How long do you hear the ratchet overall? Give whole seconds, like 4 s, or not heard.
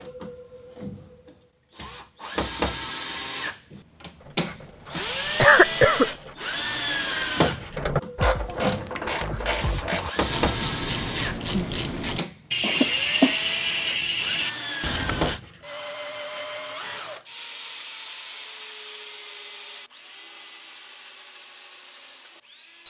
11 s.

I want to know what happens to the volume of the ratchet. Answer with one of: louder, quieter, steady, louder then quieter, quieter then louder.
louder.